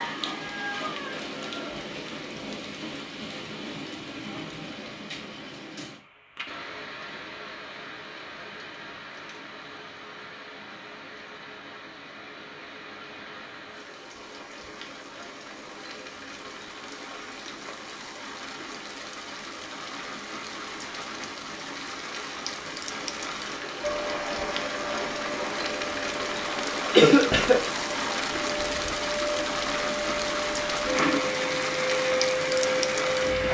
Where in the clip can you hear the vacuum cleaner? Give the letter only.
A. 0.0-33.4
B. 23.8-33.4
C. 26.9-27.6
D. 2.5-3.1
B.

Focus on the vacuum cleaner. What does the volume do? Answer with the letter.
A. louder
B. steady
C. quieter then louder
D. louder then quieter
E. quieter
A.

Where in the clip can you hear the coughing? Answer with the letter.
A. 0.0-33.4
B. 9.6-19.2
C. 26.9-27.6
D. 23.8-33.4
C.